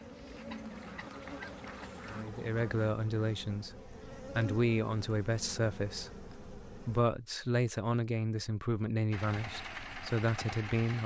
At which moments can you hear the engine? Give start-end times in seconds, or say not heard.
0.0-2.2, 9.1-11.0.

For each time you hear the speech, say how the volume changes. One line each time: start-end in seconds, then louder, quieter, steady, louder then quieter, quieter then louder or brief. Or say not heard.
2.0-11.0 steady.